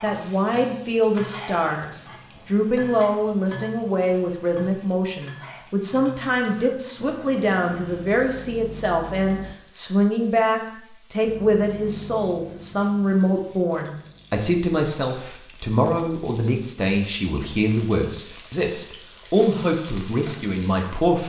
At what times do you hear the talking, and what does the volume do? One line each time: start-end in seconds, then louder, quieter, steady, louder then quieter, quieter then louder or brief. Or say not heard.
0.0-21.2 steady.